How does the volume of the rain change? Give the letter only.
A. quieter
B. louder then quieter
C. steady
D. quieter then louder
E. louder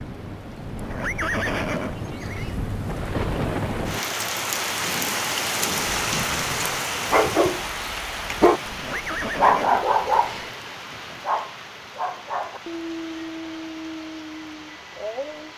B.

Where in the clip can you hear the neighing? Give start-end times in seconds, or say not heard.
0.8-2.5, 8.7-10.6.